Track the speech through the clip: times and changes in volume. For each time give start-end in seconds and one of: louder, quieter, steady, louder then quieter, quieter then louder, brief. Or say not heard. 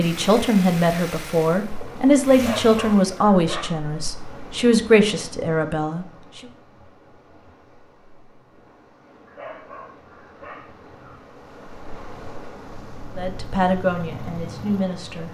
0.0-6.0 quieter then louder
13.2-15.2 brief.